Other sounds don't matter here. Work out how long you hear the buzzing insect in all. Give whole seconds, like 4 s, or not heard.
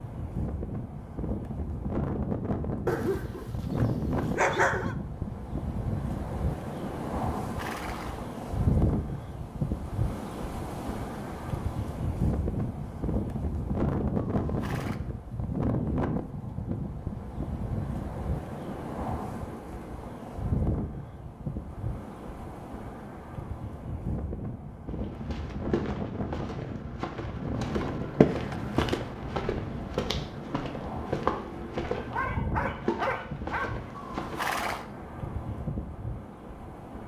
not heard.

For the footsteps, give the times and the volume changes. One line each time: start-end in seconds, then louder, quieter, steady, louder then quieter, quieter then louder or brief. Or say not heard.
25.0-34.5 louder then quieter.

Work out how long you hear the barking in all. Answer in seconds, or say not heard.
4 s.